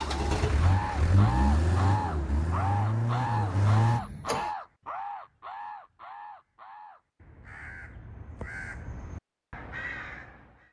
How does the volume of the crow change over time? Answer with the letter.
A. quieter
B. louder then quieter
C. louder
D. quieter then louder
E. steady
D.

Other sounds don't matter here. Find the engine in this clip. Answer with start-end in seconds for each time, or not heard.
0.0-4.5.